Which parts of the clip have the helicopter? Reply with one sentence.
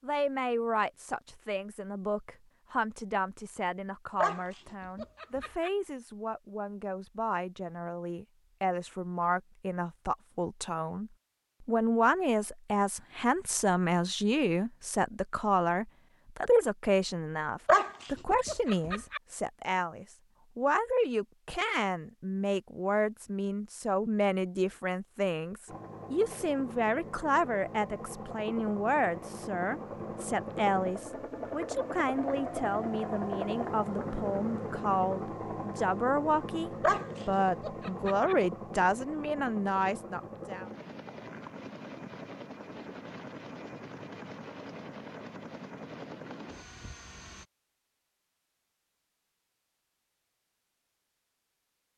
The helicopter can be heard from 25.6 to 47.5 s.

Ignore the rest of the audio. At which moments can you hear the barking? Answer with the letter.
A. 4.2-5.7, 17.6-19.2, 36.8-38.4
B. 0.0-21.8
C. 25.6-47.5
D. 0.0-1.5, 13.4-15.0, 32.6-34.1
A.